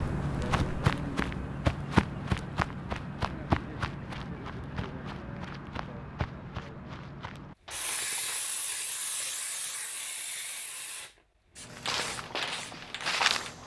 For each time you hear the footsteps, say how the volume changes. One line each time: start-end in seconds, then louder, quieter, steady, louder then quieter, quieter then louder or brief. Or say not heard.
0.0-8.6 quieter
11.7-13.6 brief.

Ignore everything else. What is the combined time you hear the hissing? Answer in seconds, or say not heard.
6 s.